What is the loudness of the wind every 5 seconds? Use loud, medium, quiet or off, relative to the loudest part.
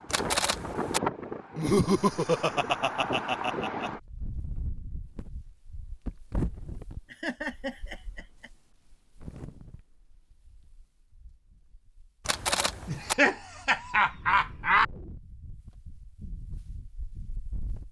loud, medium, quiet, quiet.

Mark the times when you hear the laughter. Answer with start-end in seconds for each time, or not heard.
1.6-3.9, 7.1-8.5, 12.8-14.8.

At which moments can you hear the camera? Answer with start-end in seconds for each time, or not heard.
0.1-1.0, 12.2-13.2.